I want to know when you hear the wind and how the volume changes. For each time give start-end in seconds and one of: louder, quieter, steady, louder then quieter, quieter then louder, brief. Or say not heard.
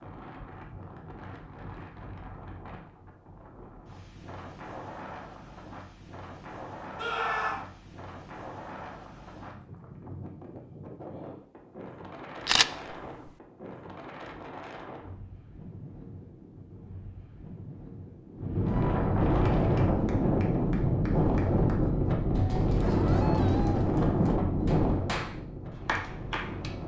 0.0-26.8 louder.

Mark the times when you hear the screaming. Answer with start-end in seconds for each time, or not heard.
7.0-7.7, 22.9-23.8.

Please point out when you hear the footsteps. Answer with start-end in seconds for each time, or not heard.
not heard.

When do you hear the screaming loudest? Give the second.
7 s.